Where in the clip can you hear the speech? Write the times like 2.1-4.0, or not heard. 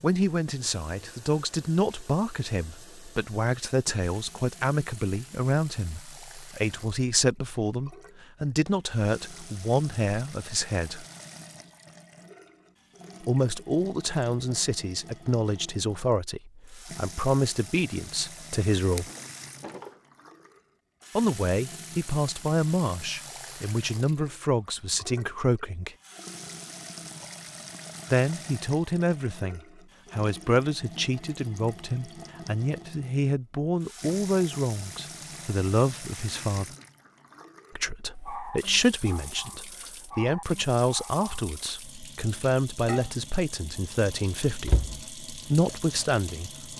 0.0-11.1, 13.2-19.1, 21.1-25.9, 28.1-36.6, 37.8-46.7.